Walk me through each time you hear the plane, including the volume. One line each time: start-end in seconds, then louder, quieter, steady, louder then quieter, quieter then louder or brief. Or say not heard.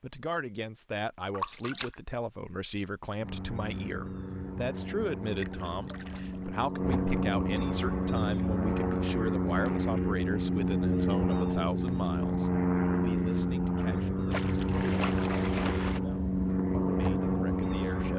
3.2-18.1 louder.